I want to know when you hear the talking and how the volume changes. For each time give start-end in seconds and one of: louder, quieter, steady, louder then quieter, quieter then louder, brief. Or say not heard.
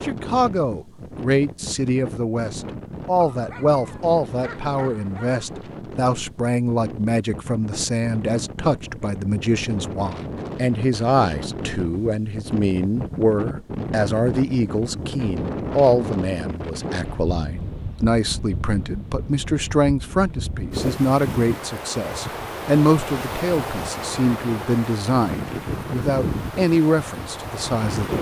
0.0-28.1 steady.